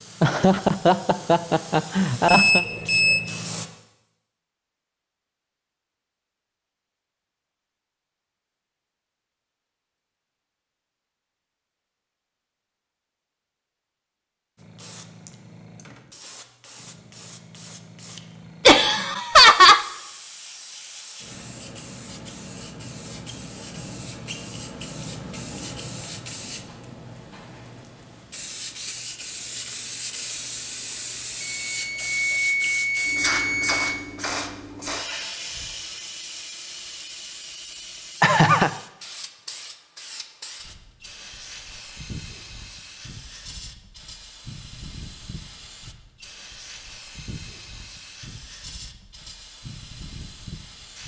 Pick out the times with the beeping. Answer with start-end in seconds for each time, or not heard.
2.2-3.2, 31.4-33.9.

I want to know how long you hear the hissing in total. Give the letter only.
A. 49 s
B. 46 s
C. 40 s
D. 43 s
C.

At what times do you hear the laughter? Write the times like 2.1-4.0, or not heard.
0.2-2.6, 18.6-19.9, 38.2-38.7.